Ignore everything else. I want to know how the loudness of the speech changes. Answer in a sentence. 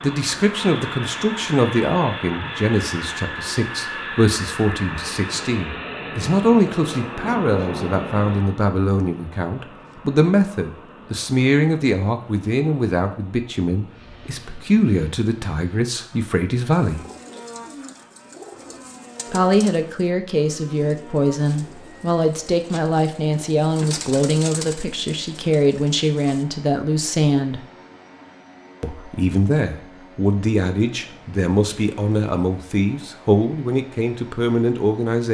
The volume of the speech stays about the same.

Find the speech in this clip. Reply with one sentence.
You can hear the speech from 0.0 to 17.1 s, from 19.3 to 27.6 s and from 28.8 to 35.2 s.